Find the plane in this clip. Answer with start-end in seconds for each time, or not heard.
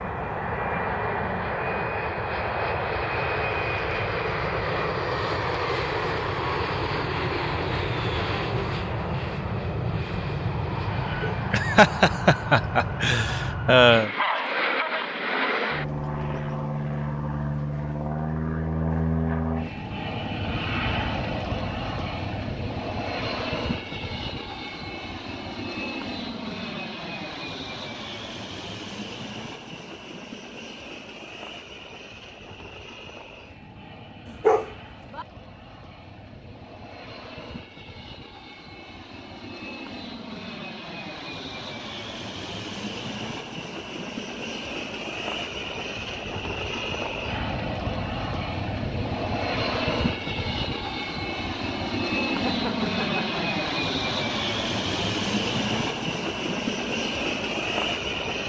0.0-58.4.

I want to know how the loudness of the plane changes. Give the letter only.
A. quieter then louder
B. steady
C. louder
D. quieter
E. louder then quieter
A.